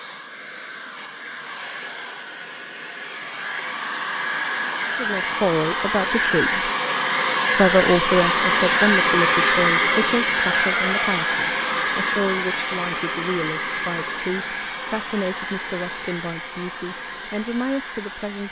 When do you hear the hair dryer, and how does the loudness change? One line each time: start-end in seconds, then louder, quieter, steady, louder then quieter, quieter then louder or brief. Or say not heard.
0.0-18.4 louder then quieter.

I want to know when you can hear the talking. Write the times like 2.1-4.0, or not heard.
4.8-6.7, 7.5-18.4.